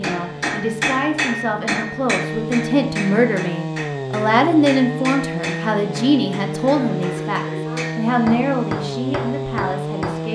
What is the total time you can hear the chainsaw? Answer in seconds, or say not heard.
10 s.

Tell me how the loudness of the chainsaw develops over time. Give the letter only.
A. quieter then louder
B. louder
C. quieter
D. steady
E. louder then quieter
B.